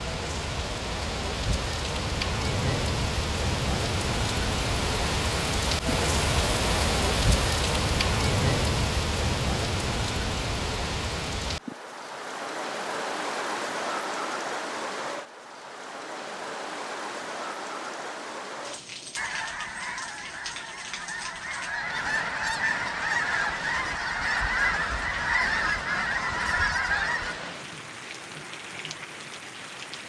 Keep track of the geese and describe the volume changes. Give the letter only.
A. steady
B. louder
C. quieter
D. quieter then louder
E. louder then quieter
B.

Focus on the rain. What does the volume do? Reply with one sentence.
The volume of the rain goes down.